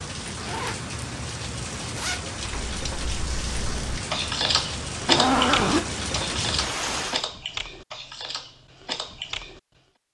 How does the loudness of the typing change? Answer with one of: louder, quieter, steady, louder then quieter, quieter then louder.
louder then quieter.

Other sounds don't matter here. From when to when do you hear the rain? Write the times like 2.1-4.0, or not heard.
0.0-7.2.